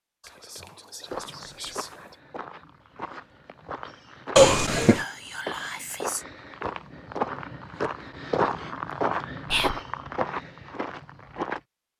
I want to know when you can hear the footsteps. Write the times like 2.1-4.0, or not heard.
1.1-11.6.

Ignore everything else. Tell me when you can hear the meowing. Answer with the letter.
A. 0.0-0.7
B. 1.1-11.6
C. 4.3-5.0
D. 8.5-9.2
C.